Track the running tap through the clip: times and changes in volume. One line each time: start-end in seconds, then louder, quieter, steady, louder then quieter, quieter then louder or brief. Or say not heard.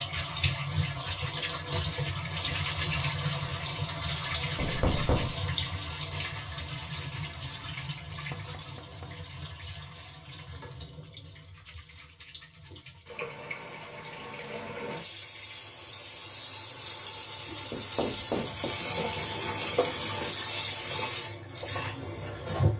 0.0-22.7 quieter then louder.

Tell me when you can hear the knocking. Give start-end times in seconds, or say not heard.
4.5-5.3, 8.3-9.1, 17.7-18.8.